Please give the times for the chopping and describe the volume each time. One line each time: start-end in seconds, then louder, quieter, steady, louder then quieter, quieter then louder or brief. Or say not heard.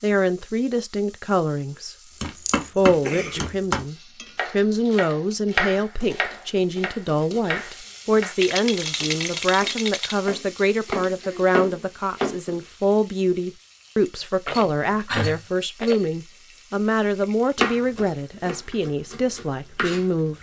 2.2-12.6 quieter then louder
17.6-20.3 brief.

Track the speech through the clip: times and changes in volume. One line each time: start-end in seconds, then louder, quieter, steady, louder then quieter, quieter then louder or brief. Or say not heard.
0.0-1.9 brief
2.8-20.3 steady.